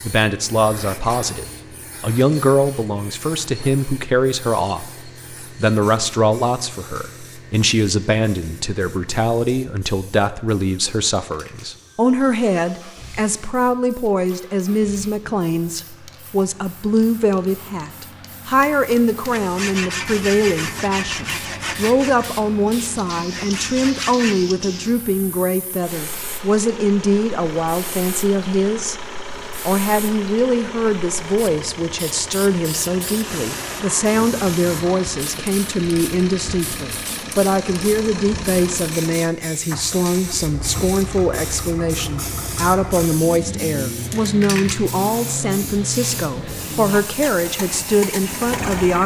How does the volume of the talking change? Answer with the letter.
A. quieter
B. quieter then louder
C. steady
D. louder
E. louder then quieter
C.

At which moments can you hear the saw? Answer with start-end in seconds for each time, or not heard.
19.3-24.4.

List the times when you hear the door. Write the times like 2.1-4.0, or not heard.
not heard.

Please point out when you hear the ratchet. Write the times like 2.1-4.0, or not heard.
not heard.